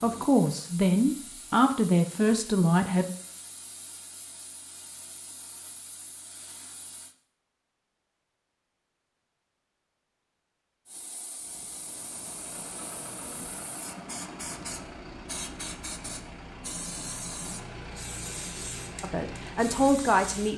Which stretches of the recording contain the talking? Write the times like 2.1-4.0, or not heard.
0.0-3.0, 19.0-20.5.